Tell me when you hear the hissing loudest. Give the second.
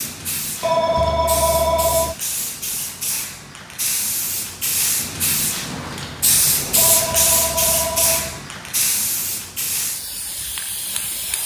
7 s.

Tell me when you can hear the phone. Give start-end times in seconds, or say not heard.
0.6-2.1, 6.8-8.4.